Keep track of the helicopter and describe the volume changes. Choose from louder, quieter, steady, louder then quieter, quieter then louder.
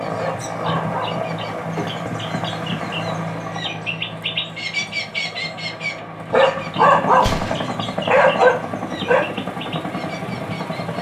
quieter then louder.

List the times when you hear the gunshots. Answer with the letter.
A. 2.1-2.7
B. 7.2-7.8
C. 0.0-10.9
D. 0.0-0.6
B.